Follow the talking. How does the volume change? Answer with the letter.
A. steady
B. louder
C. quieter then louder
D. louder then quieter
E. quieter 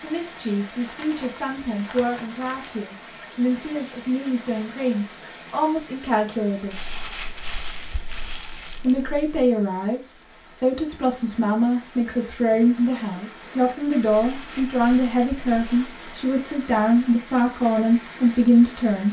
B.